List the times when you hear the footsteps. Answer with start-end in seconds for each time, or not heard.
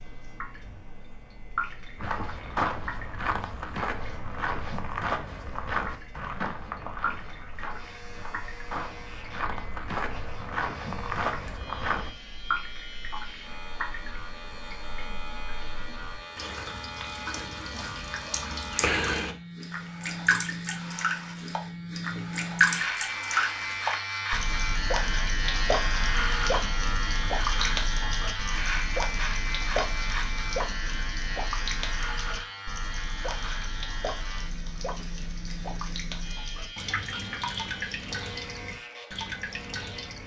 1.9-12.1.